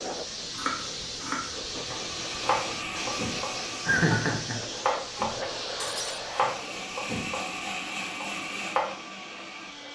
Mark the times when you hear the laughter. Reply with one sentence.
The laughter can be heard from 3.9 to 4.6 s.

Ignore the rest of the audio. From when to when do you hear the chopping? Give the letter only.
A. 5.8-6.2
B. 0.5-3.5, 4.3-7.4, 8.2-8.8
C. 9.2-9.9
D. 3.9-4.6
B.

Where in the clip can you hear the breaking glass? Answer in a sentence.
The breaking glass can be heard from 5.8 to 6.2 s.